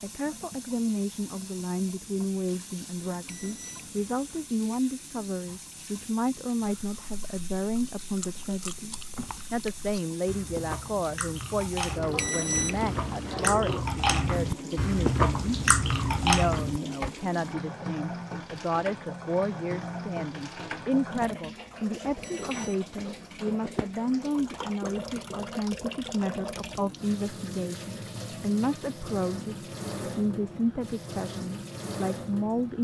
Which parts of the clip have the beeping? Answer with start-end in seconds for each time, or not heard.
3.2-4.5, 12.2-13.3, 22.2-23.4.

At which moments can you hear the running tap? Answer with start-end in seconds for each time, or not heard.
0.0-32.7.